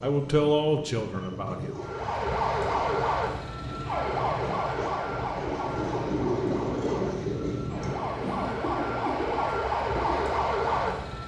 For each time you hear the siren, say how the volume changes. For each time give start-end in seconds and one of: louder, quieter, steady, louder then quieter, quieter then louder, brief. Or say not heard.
1.8-11.2 quieter then louder.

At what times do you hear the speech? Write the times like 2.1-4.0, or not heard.
0.0-1.8.